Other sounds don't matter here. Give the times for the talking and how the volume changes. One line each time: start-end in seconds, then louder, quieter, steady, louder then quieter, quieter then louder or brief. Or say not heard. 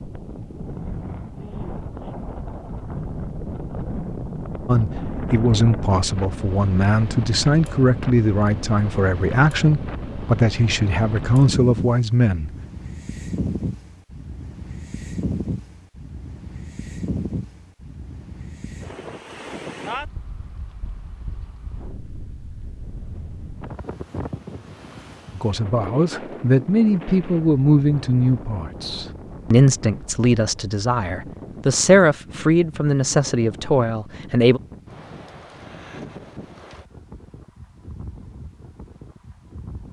4.7-12.5 steady
25.4-34.6 steady.